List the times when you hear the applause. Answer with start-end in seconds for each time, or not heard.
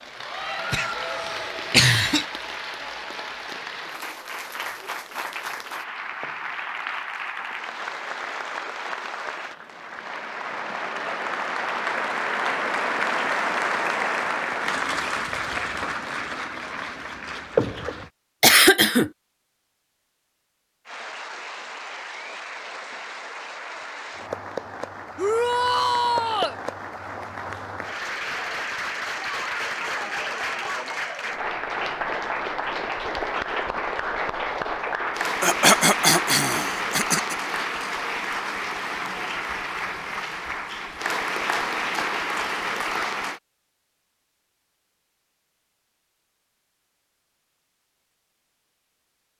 0.0-18.1, 20.9-43.4.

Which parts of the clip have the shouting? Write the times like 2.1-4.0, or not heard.
25.1-26.6.